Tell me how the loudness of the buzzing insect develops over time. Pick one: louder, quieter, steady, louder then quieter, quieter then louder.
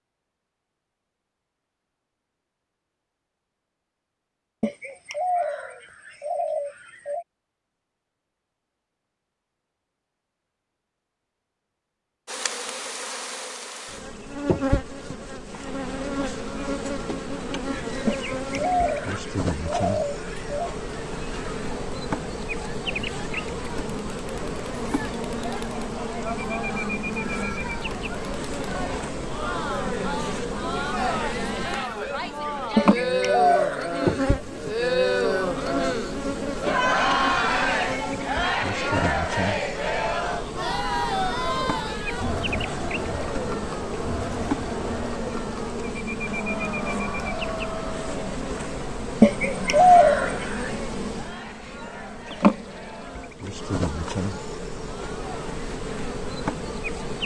steady.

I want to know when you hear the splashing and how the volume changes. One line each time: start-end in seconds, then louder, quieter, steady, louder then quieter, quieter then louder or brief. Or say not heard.
not heard.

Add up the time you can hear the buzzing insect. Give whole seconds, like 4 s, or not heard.
45 s.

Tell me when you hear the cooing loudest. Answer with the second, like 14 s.
50 s.